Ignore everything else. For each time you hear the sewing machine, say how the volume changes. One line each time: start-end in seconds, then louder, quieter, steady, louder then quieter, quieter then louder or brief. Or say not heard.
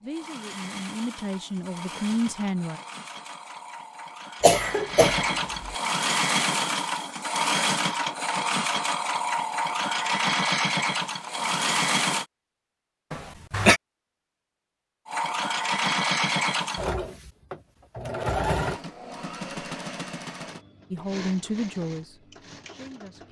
0.1-12.2 louder
15.1-23.2 quieter.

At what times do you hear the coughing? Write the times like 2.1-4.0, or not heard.
4.4-5.8, 13.1-13.8.